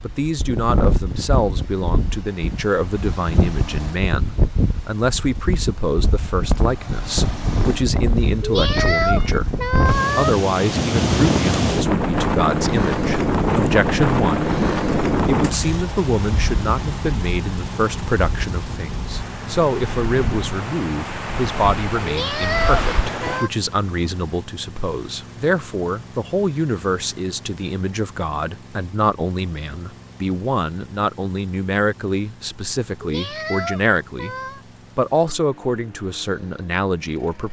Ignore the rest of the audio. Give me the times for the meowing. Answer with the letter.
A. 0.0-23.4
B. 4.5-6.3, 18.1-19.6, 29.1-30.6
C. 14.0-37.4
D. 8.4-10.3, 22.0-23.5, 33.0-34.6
D.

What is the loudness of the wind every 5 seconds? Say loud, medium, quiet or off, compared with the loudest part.
medium, medium, loud, medium, medium, off, off, off.